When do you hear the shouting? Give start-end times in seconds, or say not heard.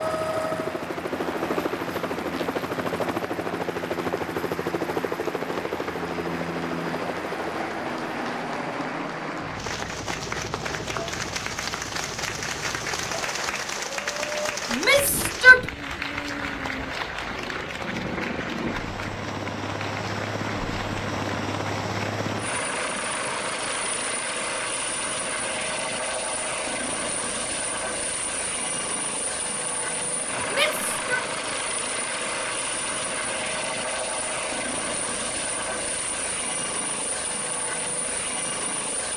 14.7-15.7, 30.5-31.2.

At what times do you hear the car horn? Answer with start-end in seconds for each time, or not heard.
not heard.